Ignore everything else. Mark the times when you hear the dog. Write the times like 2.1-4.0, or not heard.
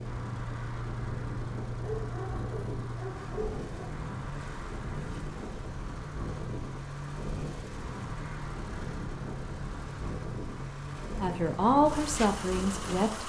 1.8-4.0.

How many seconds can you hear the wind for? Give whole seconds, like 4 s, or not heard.
13 s.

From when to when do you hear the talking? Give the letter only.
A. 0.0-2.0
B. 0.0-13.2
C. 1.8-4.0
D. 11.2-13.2
D.